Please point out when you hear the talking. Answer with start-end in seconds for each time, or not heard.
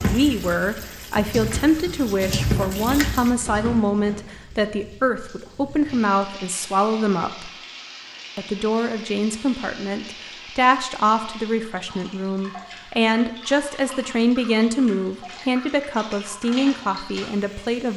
0.0-7.5, 8.3-17.9.